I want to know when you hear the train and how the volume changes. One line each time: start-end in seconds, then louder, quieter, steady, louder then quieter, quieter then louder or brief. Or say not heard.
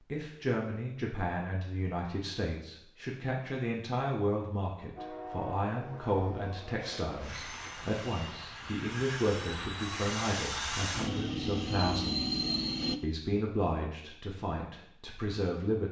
5.0-13.0 louder.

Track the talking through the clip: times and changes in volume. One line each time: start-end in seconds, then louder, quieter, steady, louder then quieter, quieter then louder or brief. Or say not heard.
0.1-12.3 steady
13.0-15.8 brief.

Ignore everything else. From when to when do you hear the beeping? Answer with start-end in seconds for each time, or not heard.
not heard.